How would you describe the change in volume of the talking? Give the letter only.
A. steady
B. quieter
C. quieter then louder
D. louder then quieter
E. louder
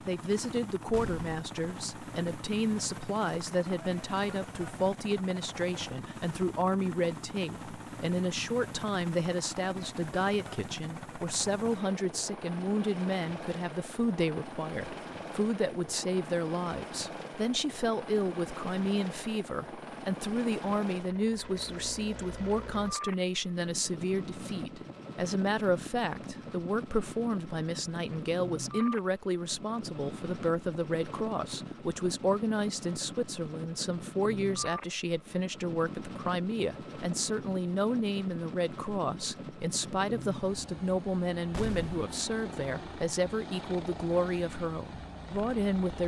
A.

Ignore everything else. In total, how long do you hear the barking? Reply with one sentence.
You can't hear the barking here.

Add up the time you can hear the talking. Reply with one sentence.
You can hear the talking for 46 seconds altogether.